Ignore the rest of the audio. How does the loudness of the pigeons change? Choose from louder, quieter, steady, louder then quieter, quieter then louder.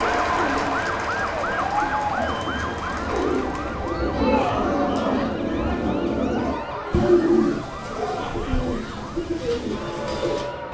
louder then quieter.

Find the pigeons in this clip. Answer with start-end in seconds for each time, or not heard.
0.0-10.6.